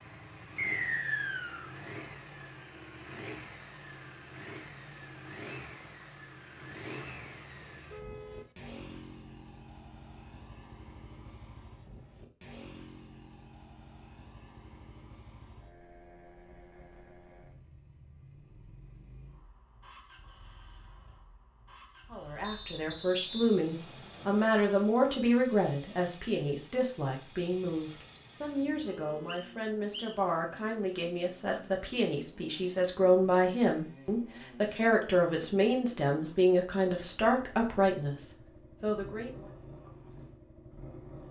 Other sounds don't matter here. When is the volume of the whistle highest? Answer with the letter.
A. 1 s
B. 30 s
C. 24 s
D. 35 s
A.